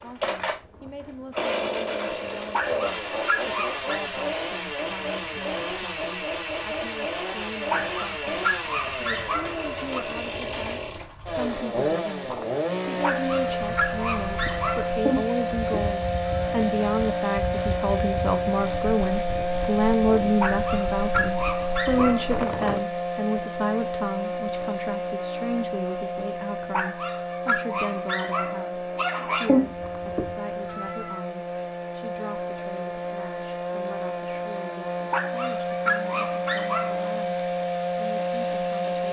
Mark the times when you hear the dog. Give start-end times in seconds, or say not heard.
2.5-4.0, 7.7-10.1, 13.0-14.9, 20.4-22.4, 26.7-29.6, 35.1-37.1.